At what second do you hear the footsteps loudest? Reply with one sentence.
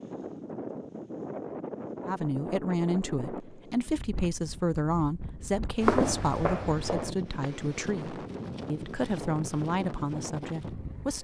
The volume of the footsteps peaks at 6 seconds.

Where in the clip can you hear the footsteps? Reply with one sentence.
You can hear the footsteps from 5.8 to 7.8 s.